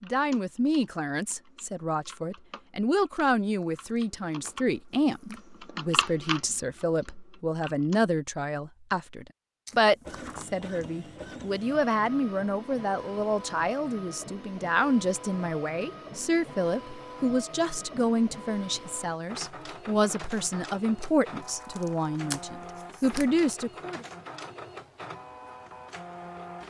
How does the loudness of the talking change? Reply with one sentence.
The loudness of the talking stays about the same.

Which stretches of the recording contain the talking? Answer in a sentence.
The talking can be heard from 0.0 to 24.1 s.